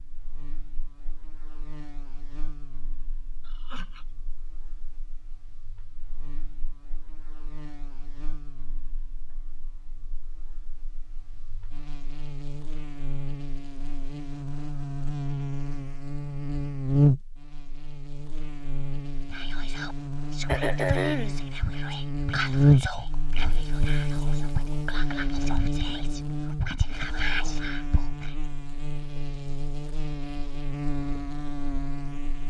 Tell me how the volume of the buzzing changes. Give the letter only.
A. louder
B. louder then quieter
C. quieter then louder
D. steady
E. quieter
B.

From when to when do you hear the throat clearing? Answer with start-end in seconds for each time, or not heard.
3.5-4.0, 20.4-21.4.